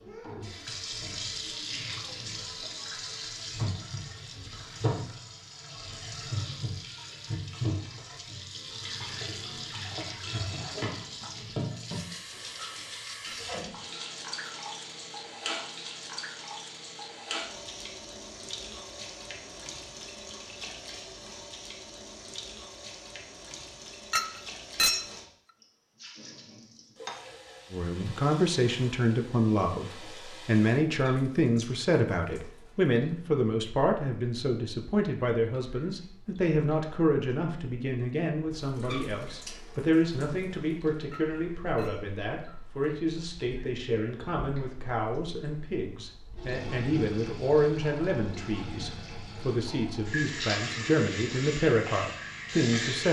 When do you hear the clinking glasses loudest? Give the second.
25 s.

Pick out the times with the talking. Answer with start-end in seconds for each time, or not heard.
27.7-53.0.